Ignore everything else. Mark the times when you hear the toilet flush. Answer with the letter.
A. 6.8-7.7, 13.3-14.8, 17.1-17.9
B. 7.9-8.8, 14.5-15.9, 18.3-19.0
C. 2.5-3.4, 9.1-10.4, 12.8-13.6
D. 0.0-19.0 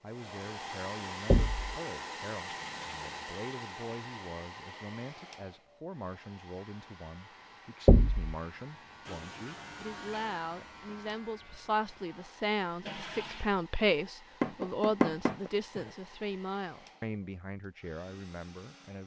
C.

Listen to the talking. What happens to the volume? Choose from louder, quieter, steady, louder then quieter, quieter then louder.
louder then quieter.